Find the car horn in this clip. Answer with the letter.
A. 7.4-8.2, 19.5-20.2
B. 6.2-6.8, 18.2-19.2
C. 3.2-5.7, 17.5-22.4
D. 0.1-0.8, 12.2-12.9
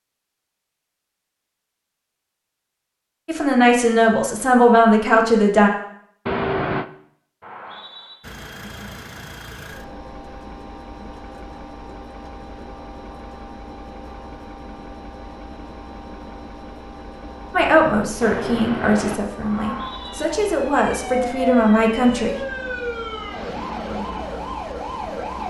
B.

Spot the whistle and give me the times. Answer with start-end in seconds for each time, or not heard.
7.4-8.2, 19.5-20.2.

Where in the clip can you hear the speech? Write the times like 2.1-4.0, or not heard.
3.2-5.7, 17.5-22.4.